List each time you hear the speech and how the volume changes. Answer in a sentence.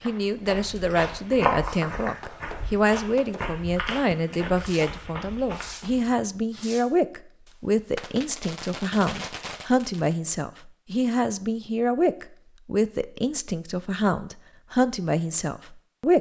The speech can be heard from 0.0 to 16.1 s, at a steady volume.